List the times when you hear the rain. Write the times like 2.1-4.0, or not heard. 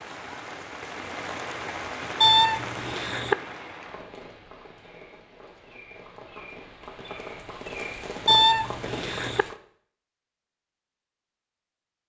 0.0-9.6.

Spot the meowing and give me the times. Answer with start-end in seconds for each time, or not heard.
2.2-3.4, 8.2-9.4.